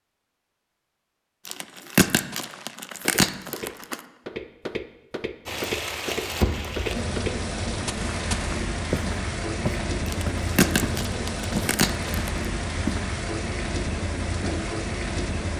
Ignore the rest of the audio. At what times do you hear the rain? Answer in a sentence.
You can hear the rain from 5.5 to 15.5 s.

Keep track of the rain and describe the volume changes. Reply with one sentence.
The volume of the rain stays about the same.